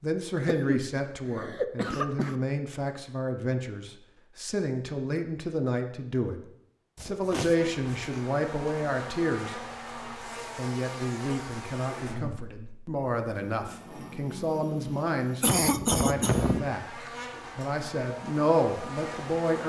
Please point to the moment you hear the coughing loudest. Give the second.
16 s.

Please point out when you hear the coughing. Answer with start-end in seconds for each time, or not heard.
0.3-2.4, 7.0-8.2, 15.4-16.6.